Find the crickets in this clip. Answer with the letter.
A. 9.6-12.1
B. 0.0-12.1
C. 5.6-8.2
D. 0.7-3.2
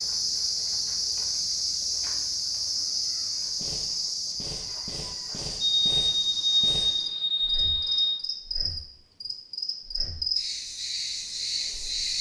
B.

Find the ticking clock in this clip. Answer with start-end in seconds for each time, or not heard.
not heard.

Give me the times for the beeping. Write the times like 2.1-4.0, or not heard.
5.6-8.2.